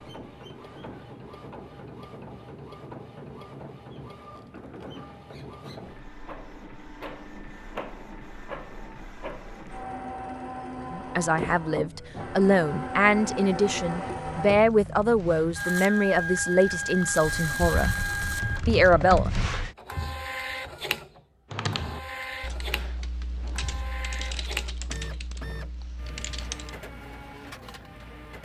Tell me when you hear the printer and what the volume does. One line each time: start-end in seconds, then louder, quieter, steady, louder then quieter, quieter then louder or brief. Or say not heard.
0.0-28.4 louder then quieter.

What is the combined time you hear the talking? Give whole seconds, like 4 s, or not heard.
8 s.